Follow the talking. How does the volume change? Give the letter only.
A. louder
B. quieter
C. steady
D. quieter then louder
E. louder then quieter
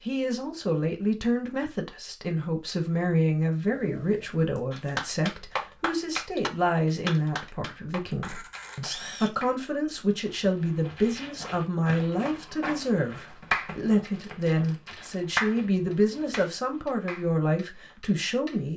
C.